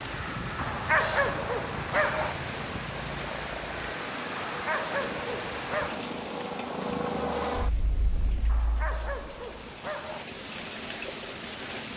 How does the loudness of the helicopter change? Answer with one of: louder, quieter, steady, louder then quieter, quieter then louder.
louder.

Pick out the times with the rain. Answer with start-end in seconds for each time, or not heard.
0.0-11.9.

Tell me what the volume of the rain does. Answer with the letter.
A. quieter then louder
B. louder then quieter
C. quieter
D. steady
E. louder
A.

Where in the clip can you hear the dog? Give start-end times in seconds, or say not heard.
0.6-2.4, 4.5-6.0, 8.4-10.2.